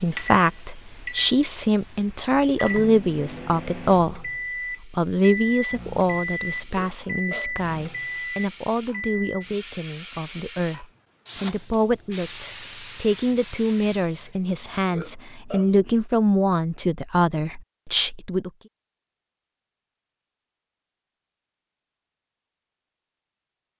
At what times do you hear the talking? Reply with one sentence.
The talking can be heard from 0.0 to 18.5 s.